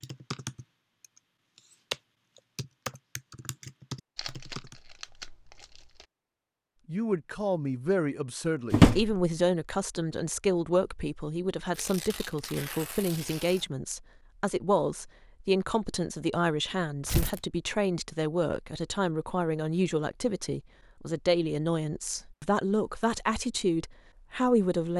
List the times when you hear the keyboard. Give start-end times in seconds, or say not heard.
0.0-4.8.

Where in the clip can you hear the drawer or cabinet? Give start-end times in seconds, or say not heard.
8.7-9.2.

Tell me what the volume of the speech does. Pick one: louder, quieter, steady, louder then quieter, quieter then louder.
steady.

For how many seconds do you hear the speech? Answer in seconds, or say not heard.
18 s.